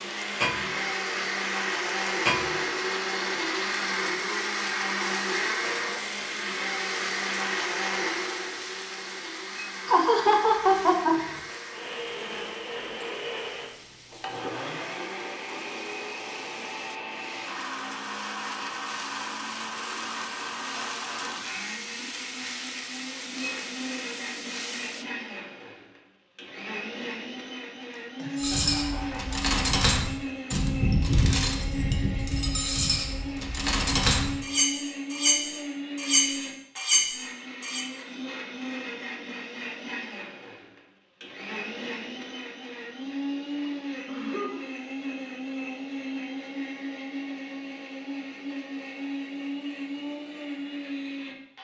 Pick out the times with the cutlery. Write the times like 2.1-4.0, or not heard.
28.4-37.9.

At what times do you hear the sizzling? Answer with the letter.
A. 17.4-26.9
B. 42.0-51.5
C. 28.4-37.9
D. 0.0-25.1
D.